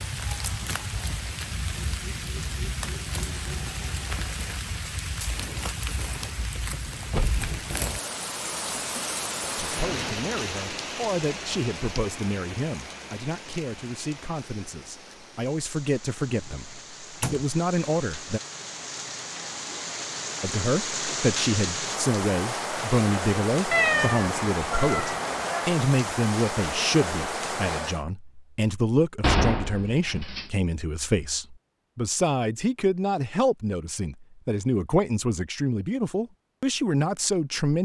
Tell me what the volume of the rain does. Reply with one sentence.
The loudness of the rain goes down, then up.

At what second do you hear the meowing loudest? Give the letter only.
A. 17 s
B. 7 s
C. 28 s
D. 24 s
D.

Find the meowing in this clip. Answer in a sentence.
You can hear the meowing from 23.7 to 25.6 s.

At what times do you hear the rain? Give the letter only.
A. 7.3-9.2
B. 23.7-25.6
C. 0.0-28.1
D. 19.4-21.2
C.